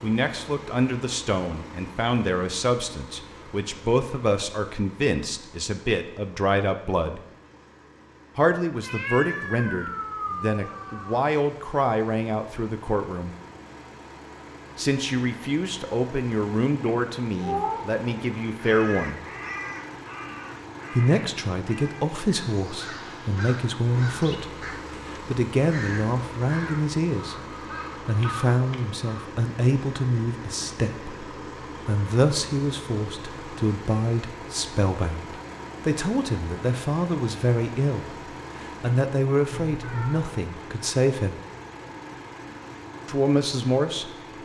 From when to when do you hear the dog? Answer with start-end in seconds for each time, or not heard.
not heard.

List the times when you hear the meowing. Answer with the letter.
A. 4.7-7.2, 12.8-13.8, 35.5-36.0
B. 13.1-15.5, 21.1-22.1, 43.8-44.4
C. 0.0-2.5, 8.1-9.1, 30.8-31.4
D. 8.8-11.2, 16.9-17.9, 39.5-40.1
D.